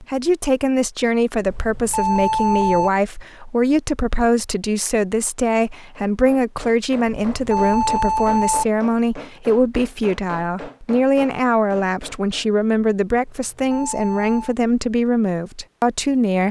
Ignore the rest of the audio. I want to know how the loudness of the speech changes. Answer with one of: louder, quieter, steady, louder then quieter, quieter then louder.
steady.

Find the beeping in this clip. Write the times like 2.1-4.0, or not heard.
1.5-2.9, 7.3-8.7, 13.2-14.6.